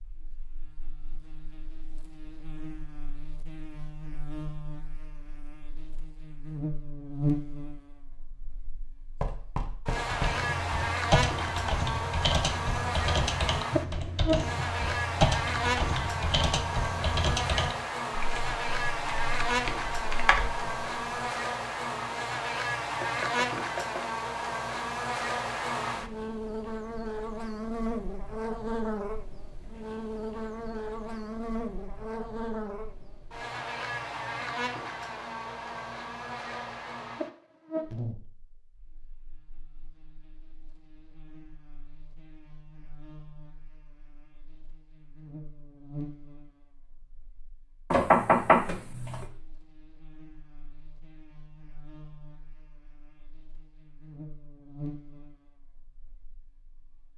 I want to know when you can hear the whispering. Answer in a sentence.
The whispering can't be heard in this clip.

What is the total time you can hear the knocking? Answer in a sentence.
You can hear the knocking for 4 seconds altogether.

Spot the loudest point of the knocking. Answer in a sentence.
The loudest moment of the knocking is at 48 seconds.